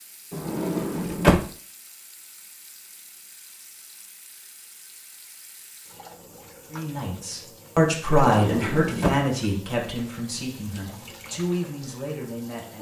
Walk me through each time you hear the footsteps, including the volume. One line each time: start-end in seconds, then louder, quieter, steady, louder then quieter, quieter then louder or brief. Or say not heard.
not heard.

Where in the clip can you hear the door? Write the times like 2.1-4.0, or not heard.
0.3-1.4, 8.2-9.2.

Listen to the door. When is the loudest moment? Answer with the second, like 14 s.
1 s.